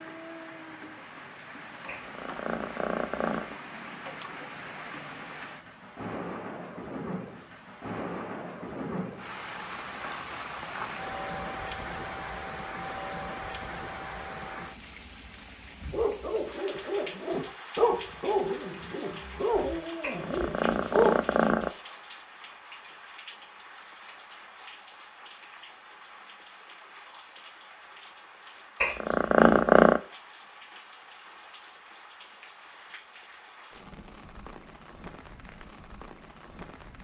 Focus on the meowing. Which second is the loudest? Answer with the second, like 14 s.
30 s.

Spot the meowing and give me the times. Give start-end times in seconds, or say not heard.
1.9-3.5, 20.0-21.7, 28.8-30.0.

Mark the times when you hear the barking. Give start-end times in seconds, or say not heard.
15.8-21.1.